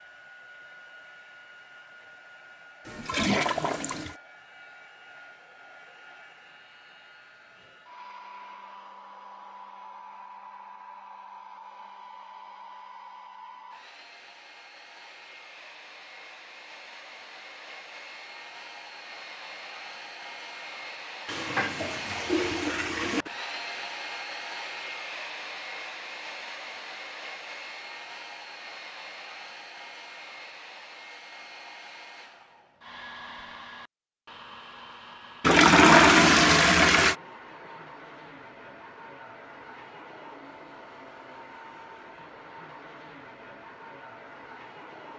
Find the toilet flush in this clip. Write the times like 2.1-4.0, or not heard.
2.9-4.2, 21.2-23.3, 35.4-37.1.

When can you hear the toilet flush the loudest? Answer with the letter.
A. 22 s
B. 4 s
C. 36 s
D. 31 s
C.